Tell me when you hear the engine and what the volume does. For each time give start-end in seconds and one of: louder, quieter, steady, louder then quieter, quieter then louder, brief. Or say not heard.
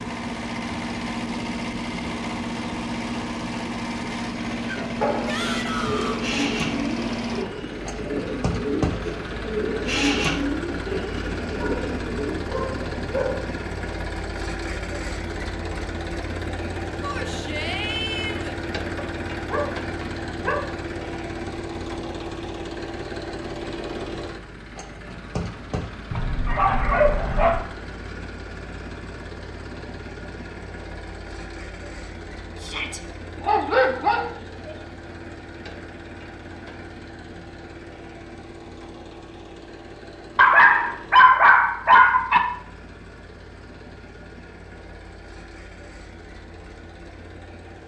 0.0-47.8 quieter.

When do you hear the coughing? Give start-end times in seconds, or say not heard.
not heard.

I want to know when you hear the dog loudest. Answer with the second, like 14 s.
41 s.